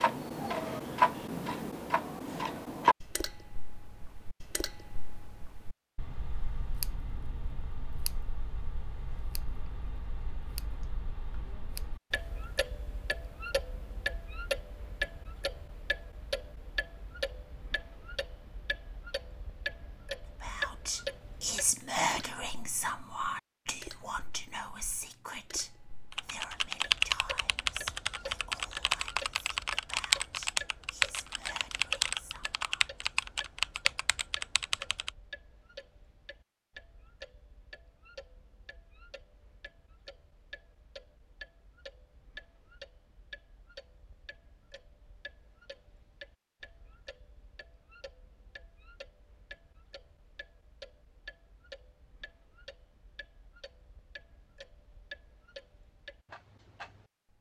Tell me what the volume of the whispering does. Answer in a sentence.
The loudness of the whispering goes down.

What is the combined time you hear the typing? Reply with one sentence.
The typing can be heard for 9 seconds in total.